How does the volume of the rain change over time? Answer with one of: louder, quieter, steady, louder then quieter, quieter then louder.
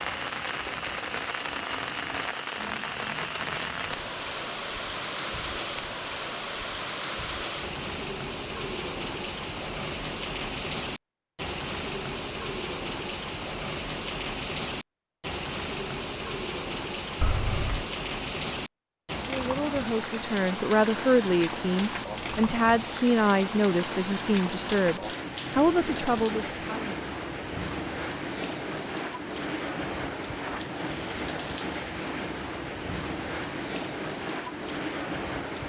steady.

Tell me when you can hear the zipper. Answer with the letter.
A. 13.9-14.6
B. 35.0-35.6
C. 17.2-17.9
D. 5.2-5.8
C.